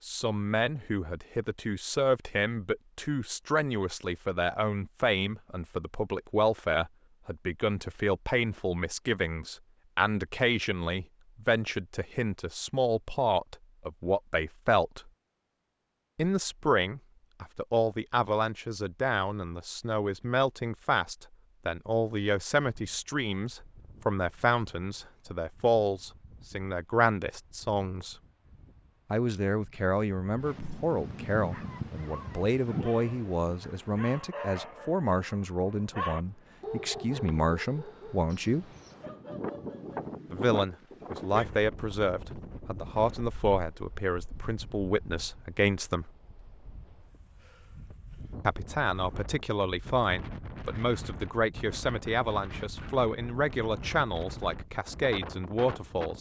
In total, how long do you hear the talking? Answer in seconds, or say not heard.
50 s.